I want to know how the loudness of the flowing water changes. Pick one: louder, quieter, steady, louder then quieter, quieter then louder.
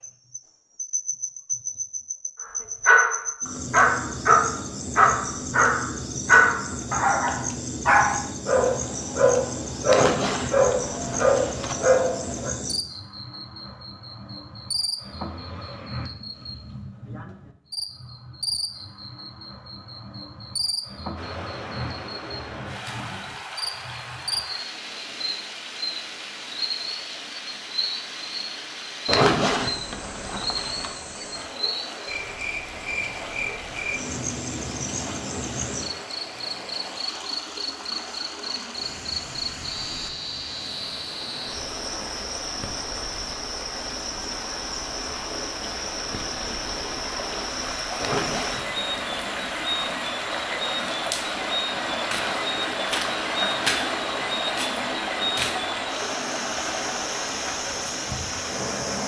louder.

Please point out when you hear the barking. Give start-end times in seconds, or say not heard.
2.9-12.5.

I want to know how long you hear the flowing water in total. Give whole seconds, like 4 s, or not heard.
38 s.